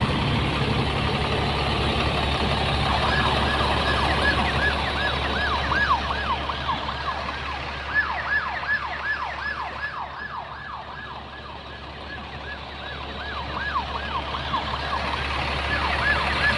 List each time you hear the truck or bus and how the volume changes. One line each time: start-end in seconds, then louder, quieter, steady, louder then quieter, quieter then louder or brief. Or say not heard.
0.0-16.5 quieter then louder.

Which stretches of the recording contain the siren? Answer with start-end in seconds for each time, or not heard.
2.9-16.5.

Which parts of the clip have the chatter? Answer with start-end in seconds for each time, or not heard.
not heard.